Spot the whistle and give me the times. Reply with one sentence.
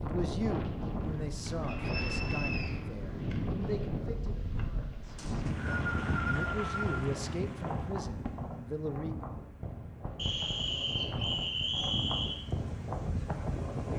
You can hear the whistle from 1.6 to 2.8 s, from 5.2 to 7.0 s and from 10.2 to 12.4 s.